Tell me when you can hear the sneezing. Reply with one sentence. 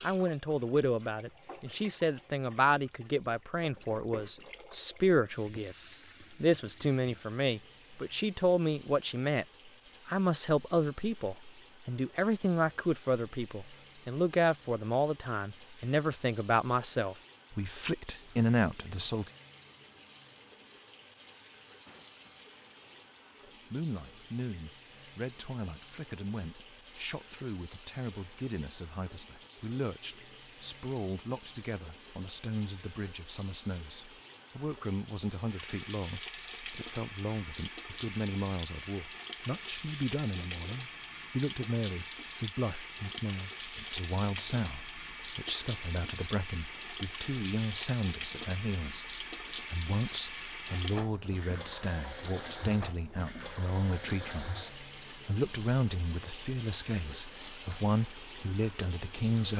You can hear the sneezing from 21.9 to 23.1 s.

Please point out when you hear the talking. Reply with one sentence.
You can hear the talking from 0.0 to 9.4 s, from 10.1 to 19.3 s and from 23.7 to 59.5 s.